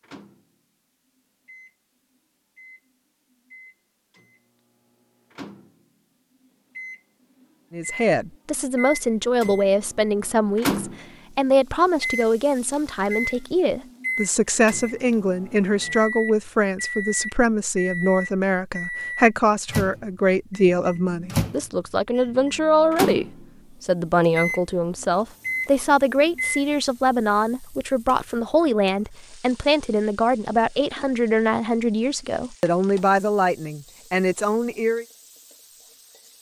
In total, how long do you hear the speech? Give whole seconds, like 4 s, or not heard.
27 s.